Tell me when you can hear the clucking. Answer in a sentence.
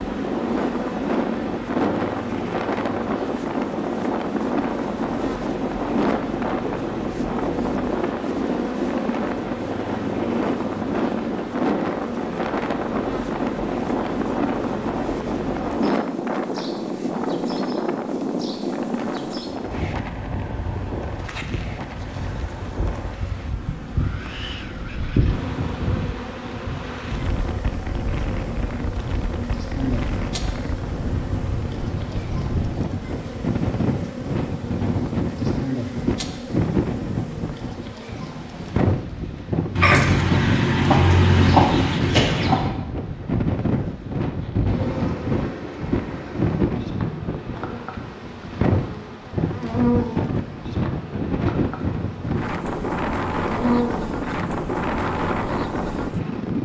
The clucking can be heard from 39.8 to 42.7 s.